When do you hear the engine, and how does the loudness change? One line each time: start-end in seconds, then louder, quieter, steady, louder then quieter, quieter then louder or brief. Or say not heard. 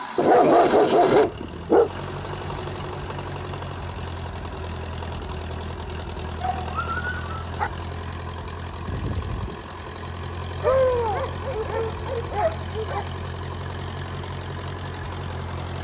0.0-15.7 steady.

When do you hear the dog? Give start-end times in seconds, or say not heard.
0.1-1.9, 6.4-7.7, 10.6-13.1.